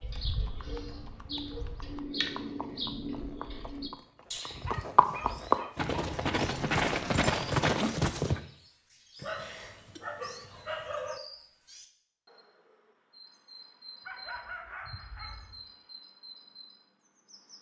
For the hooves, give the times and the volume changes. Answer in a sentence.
The hooves can be heard from 0.1 to 8.4 s, getting louder.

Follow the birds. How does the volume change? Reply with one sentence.
The volume of the birds goes down.